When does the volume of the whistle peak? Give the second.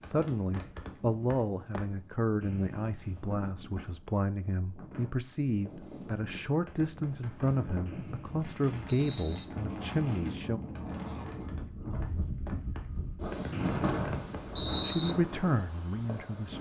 15 s.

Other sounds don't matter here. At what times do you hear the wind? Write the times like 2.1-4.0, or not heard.
0.0-16.5.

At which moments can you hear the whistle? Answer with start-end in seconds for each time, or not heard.
2.4-3.4, 7.8-9.4, 13.5-15.2.